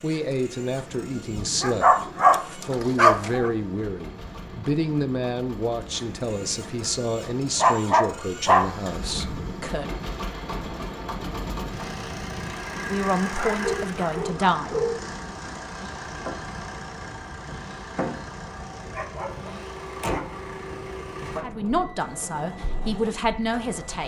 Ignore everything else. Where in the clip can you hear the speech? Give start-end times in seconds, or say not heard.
0.0-10.0, 12.8-14.8, 21.4-24.0.